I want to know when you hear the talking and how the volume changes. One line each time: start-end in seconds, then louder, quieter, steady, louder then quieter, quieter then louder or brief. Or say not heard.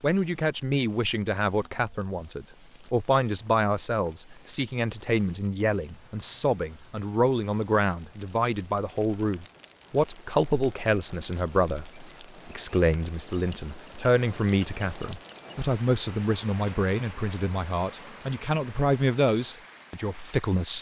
0.0-20.7 steady.